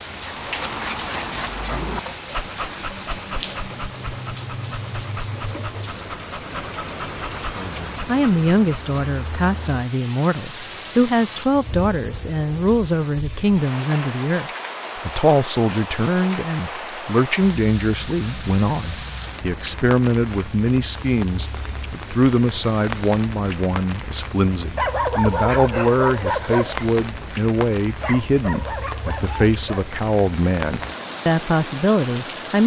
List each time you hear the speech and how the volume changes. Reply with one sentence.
The speech can be heard from 7.5 to 32.6 s, at a steady volume.